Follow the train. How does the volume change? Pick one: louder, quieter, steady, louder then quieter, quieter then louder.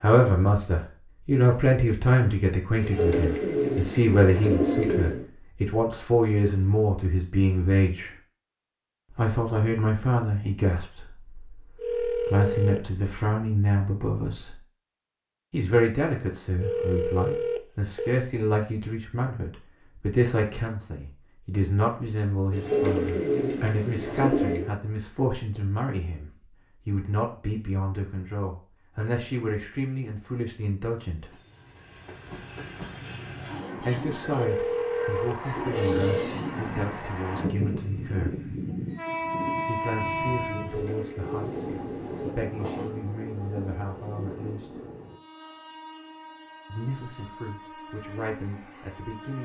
louder then quieter.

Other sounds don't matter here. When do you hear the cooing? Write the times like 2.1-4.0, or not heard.
2.8-5.2, 22.5-24.7, 40.5-42.4.